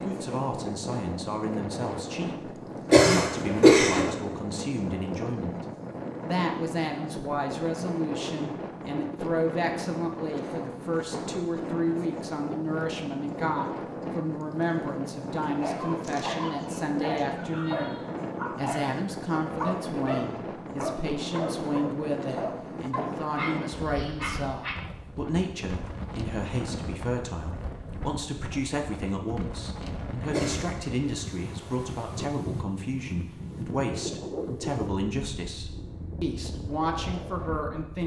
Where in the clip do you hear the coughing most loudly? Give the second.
4 s.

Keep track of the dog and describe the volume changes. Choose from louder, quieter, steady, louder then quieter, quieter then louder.
steady.